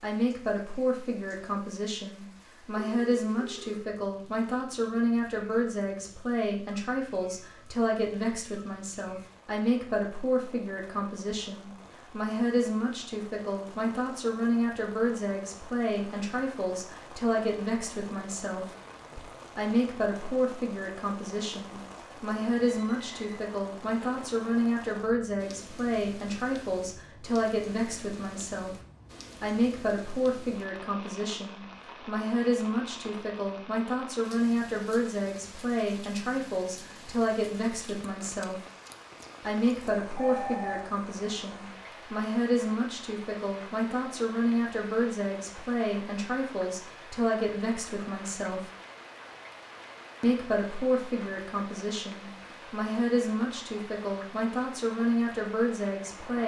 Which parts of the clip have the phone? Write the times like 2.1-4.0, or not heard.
2.8-3.9, 22.6-23.1, 40.1-40.9.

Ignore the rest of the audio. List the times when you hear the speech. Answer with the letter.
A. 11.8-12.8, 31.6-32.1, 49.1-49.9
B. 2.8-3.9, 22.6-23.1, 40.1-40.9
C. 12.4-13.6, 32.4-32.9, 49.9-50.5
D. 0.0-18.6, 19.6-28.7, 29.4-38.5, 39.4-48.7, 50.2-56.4
D.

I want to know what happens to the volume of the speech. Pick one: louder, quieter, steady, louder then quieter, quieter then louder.
steady.